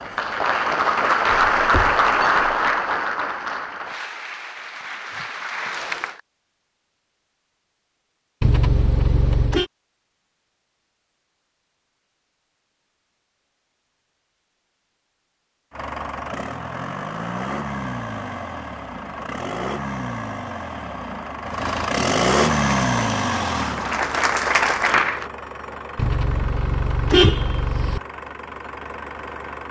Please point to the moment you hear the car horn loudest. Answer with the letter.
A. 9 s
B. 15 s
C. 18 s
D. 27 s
D.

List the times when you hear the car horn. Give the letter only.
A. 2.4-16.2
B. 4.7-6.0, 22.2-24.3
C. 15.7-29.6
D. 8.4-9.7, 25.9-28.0
D.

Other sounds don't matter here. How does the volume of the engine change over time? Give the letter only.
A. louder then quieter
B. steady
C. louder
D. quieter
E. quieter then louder
A.